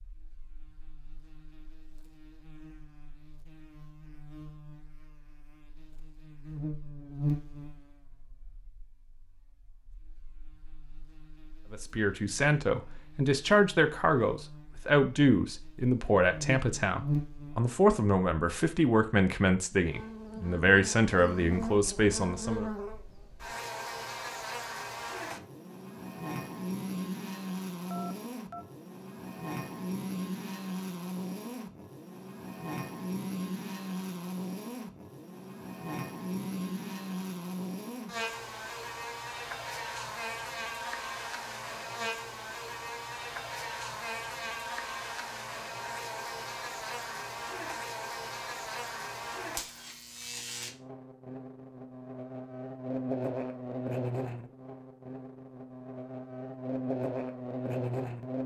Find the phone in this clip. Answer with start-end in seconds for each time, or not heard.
27.9-28.6.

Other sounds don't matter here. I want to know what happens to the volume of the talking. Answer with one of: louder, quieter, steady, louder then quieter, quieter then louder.
steady.